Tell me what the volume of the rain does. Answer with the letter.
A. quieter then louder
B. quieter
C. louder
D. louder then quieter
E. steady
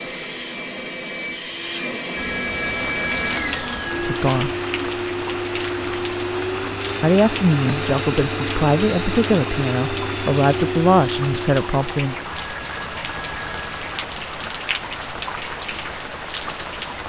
E.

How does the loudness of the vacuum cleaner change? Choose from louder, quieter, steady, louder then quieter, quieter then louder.
steady.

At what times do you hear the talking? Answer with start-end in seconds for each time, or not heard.
4.0-4.5, 7.0-12.2.